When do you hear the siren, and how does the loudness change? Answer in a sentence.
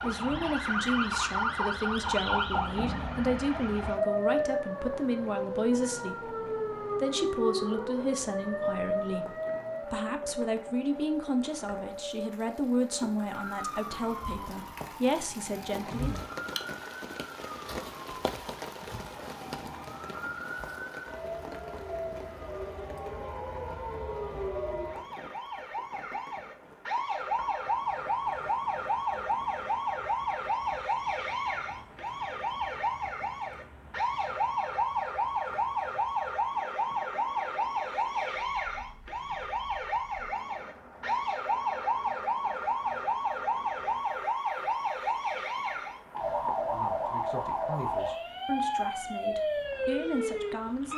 The siren can be heard from 0.0 to 50.9 s, getting quieter then louder.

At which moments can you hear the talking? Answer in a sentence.
You can hear the talking from 0.0 to 16.2 s and from 46.7 to 50.9 s.